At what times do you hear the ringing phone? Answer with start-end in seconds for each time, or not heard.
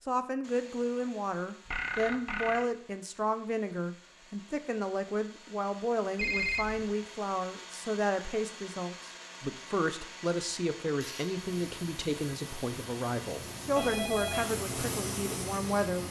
1.6-2.7, 6.2-6.9, 13.8-14.5.